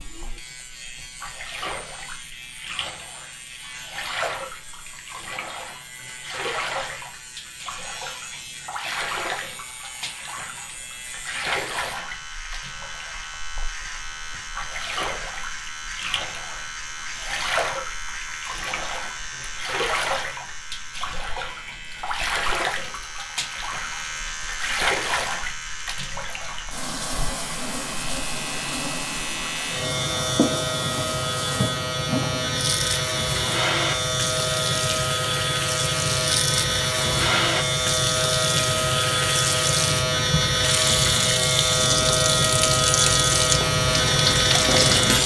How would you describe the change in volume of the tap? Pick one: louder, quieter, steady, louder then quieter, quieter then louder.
louder.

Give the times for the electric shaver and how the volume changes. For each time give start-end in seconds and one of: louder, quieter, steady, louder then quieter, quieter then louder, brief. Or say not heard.
0.0-45.2 louder.